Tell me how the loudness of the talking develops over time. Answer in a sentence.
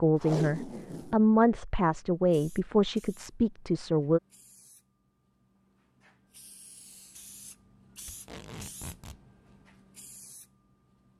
The volume of the talking goes up, then down.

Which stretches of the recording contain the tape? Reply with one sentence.
The tape can be heard from 0.2 to 1.2 s and from 8.1 to 9.2 s.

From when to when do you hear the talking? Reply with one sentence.
You can hear the talking from 0.0 to 4.2 s.